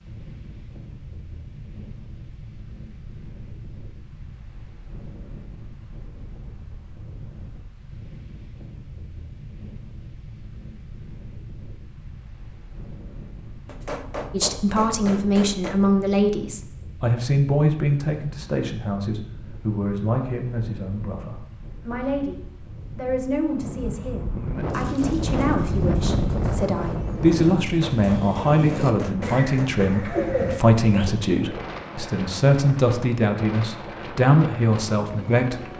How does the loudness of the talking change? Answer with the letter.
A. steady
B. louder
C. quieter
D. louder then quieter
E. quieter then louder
E.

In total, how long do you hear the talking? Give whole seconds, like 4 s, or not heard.
21 s.